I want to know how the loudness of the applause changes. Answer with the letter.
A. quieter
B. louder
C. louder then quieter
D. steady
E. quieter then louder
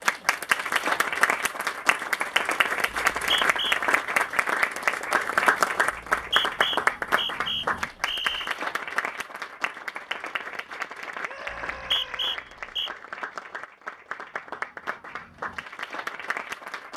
A.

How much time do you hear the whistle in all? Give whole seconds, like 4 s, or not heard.
5 s.